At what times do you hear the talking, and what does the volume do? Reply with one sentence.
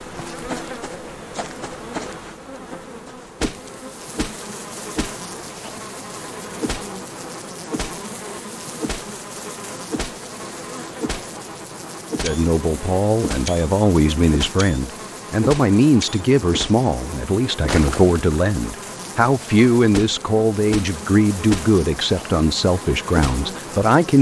The talking can be heard from 12.2 to 24.1 s, at a steady volume.